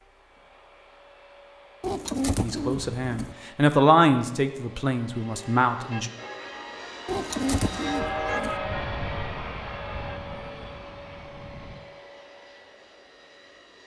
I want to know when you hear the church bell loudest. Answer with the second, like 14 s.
8 s.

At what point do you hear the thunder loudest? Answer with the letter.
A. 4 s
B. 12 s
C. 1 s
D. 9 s
D.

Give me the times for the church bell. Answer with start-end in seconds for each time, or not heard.
5.2-10.8.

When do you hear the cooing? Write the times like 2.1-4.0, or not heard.
1.8-3.4, 7.0-8.6.